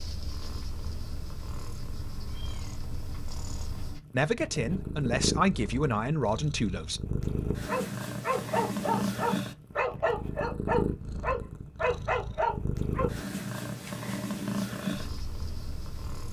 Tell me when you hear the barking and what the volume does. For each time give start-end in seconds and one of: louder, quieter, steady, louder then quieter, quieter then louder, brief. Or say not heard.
7.7-13.1 steady.